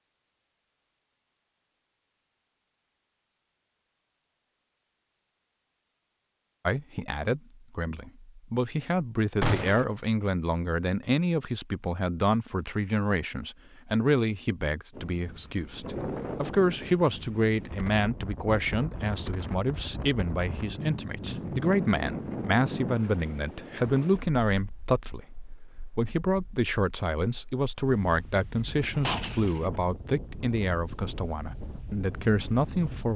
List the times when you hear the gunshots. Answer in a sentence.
The gunshots can be heard from 9.4 to 9.8 s and from 28.6 to 29.6 s.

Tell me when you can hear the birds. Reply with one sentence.
The birds can't be heard in this clip.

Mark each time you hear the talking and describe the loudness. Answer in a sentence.
The talking can be heard from 6.7 to 33.1 s, at a steady volume.